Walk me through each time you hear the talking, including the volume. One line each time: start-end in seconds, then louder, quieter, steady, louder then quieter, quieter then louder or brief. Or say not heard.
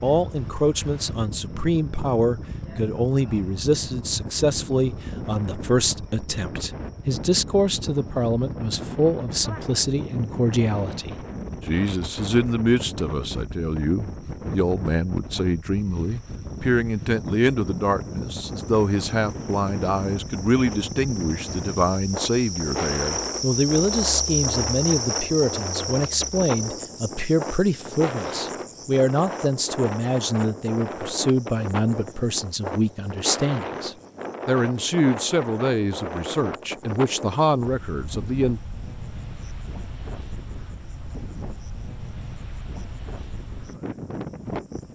0.0-38.6 steady.